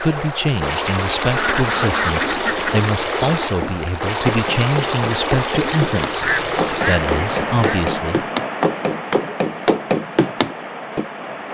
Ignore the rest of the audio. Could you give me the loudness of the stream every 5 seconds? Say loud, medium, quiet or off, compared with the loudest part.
loud, loud, medium.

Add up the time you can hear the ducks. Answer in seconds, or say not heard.
3 s.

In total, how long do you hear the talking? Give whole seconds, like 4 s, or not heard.
8 s.